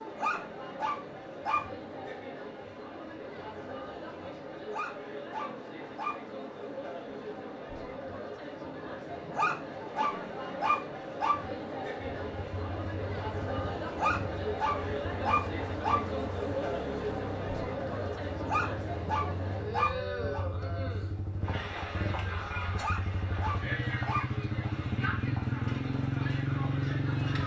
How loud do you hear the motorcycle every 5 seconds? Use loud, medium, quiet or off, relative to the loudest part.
off, off, quiet, quiet, medium, loud.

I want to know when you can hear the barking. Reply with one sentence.
You can hear the barking from 0.1 to 1.6 s, from 4.7 to 6.2 s, from 9.3 to 11.3 s, from 13.9 to 15.9 s, from 18.4 to 20.4 s and from 22.8 to 24.8 s.